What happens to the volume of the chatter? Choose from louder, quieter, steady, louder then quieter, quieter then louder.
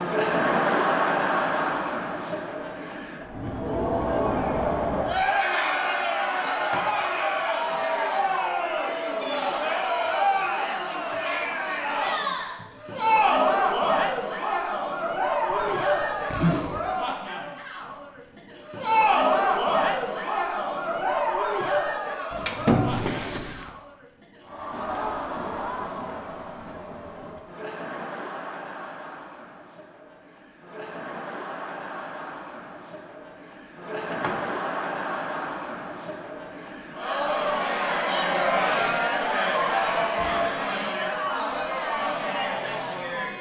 quieter then louder.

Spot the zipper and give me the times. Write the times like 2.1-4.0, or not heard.
15.5-16.8, 22.9-23.7.